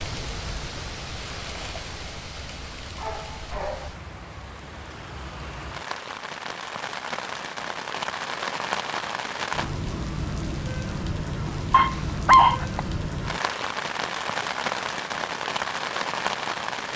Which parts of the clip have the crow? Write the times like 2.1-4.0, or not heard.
not heard.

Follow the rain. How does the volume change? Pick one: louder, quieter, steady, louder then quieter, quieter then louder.
louder.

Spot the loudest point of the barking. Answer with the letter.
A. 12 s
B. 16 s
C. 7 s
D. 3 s
A.